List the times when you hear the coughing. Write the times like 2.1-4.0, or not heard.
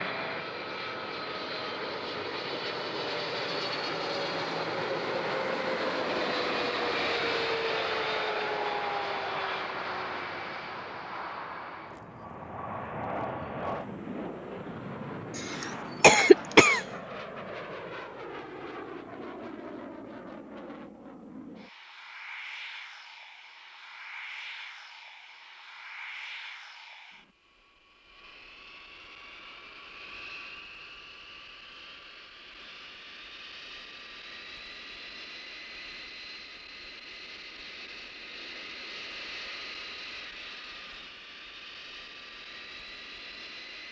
15.3-16.8.